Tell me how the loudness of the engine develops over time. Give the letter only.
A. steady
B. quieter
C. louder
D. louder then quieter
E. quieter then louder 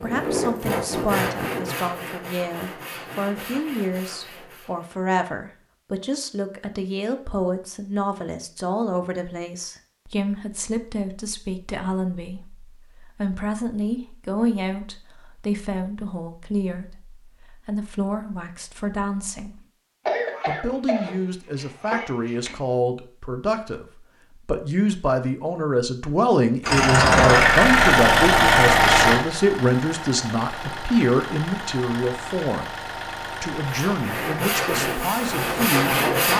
B.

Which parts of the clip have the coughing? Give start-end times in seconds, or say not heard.
20.1-22.6.